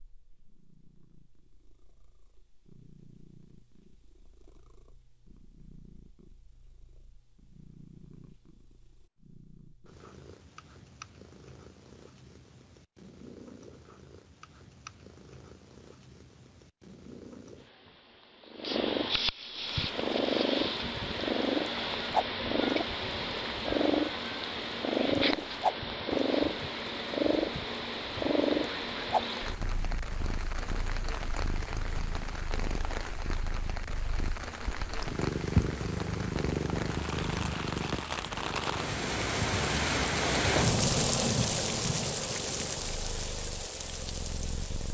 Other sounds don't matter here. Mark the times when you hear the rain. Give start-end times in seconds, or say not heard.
19.6-44.8.